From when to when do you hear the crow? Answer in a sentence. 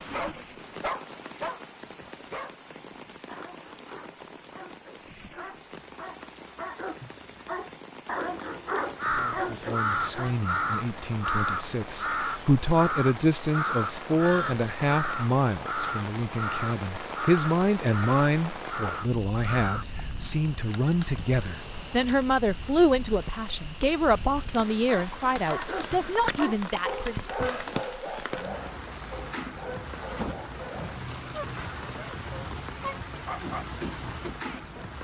You can hear the crow from 8.9 to 19.9 s.